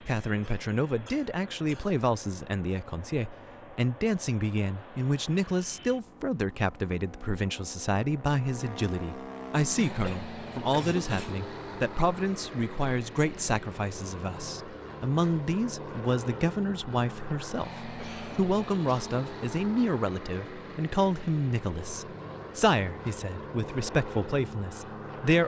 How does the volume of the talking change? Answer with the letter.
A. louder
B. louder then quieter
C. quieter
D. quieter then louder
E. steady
E.